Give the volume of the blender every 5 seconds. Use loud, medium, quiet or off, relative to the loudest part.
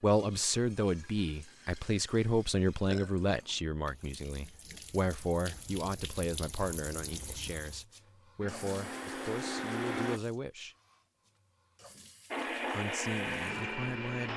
off, loud, loud.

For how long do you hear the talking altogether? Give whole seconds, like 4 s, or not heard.
12 s.